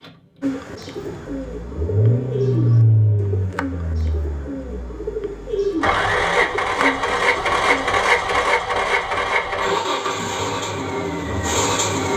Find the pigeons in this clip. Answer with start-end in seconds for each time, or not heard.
0.4-8.0.